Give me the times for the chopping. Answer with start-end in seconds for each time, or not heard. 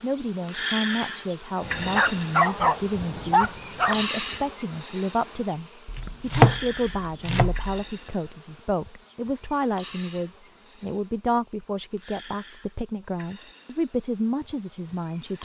5.8-7.8.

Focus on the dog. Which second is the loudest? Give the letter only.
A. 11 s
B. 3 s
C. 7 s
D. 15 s
B.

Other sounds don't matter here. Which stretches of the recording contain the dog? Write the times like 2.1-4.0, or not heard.
1.6-4.0.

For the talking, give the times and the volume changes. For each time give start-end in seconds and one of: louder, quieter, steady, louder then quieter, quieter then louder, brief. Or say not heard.
0.0-15.4 steady.